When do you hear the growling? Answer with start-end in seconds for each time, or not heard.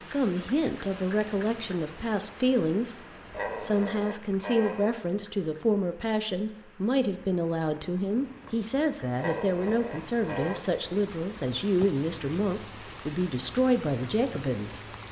3.3-5.0, 9.2-10.7.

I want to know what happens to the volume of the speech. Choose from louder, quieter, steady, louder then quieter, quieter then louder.
steady.